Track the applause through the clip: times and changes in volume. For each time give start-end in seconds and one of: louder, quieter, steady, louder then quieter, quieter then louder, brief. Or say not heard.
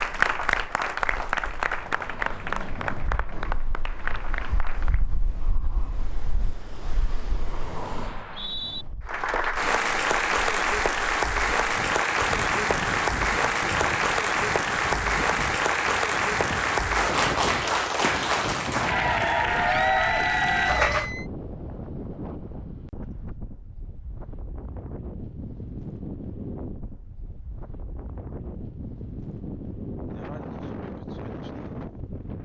0.0-5.0 quieter
9.1-21.1 steady.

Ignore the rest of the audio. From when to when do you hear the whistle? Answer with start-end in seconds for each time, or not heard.
8.1-8.8.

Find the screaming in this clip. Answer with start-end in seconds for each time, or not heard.
19.6-21.2.